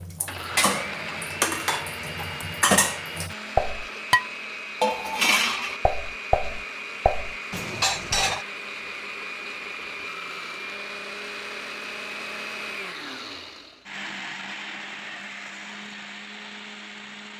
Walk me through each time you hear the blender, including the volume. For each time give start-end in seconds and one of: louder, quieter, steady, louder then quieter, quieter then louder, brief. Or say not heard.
0.0-17.3 steady.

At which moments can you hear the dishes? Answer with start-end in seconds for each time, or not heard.
0.0-8.4.